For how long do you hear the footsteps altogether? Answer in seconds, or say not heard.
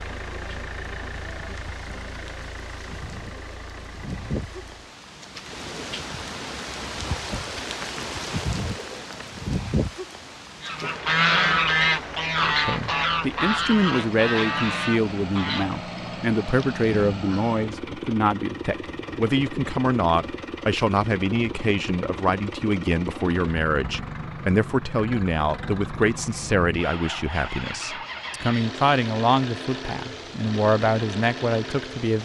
not heard.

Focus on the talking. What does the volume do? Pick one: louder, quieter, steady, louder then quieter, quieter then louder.
steady.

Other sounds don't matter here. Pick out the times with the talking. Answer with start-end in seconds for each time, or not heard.
12.4-32.2.